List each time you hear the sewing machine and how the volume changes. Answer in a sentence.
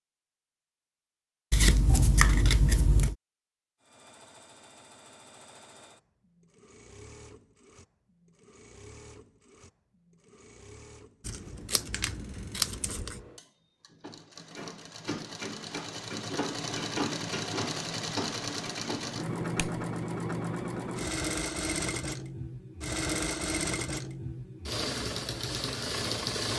You can hear the sewing machine from 3.8 to 26.5 s, getting louder.